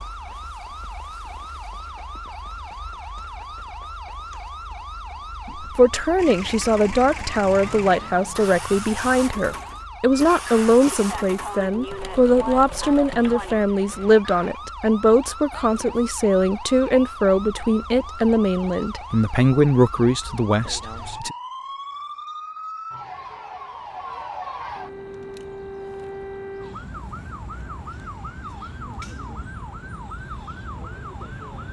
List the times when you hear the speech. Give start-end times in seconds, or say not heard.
5.8-21.4.